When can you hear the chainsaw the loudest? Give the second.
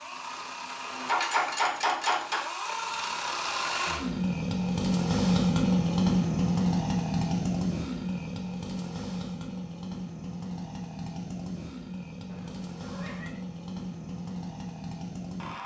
6 s.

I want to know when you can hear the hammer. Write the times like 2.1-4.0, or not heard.
1.1-2.6.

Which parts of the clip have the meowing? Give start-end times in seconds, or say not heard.
12.2-13.4.